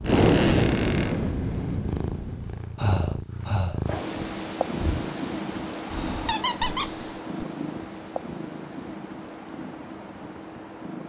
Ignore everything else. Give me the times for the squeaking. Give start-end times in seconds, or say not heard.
0.0-1.1, 6.2-7.0.